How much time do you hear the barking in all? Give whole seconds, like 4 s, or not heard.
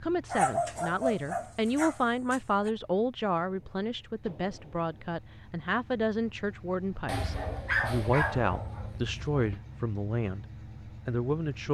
5 s.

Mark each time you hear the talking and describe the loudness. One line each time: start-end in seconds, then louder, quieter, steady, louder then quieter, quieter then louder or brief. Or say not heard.
0.0-11.6 steady.